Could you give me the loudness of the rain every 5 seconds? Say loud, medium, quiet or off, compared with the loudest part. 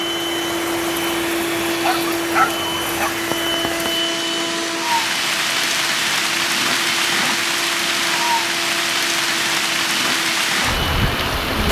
medium, loud, loud.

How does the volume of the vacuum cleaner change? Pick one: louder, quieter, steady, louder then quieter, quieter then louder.
quieter.